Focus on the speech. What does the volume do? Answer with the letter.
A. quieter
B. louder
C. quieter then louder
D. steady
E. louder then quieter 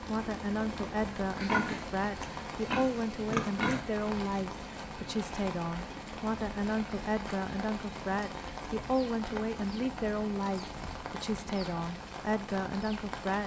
D.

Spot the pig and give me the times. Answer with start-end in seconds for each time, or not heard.
1.4-3.9.